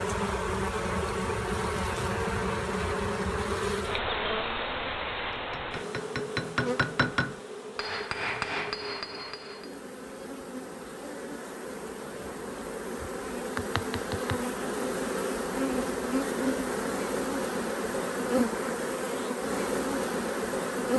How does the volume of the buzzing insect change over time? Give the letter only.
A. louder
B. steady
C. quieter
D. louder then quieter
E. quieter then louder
E.